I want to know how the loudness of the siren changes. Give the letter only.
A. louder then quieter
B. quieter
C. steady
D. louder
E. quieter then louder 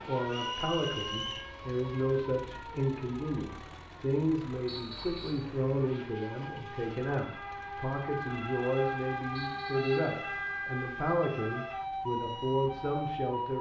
E.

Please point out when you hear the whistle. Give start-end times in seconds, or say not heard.
0.2-1.5, 4.7-5.5, 9.3-10.2.